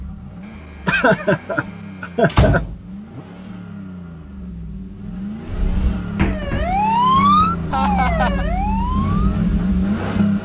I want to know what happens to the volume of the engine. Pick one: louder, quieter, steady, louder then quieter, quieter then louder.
louder.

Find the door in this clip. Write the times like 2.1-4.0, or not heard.
2.2-3.2, 5.5-6.8.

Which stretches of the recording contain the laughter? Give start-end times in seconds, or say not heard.
0.8-2.6, 7.7-8.4.